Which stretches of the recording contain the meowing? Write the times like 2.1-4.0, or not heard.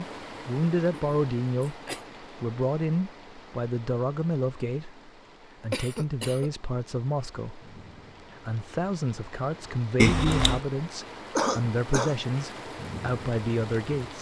9.9-10.6.